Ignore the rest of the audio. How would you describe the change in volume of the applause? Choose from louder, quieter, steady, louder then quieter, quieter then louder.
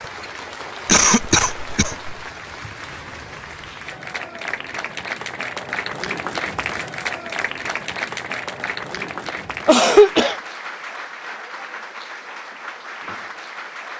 louder then quieter.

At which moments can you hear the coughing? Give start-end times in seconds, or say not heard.
0.8-2.1, 9.7-10.3.